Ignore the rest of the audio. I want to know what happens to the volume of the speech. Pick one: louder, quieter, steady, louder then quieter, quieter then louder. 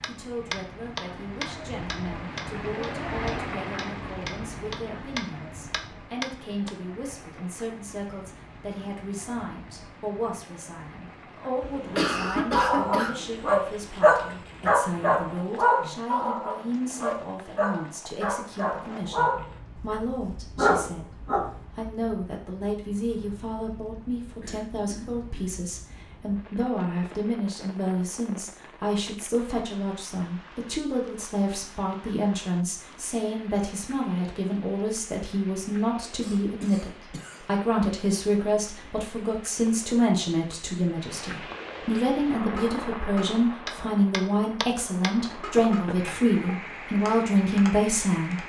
louder.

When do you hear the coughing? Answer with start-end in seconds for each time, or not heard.
11.6-13.1, 24.4-25.6, 36.2-37.5.